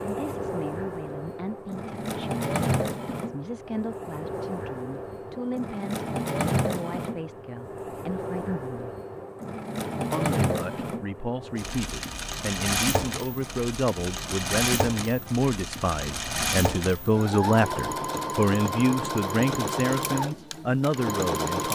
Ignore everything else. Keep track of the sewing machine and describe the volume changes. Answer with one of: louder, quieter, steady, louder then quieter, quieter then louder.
steady.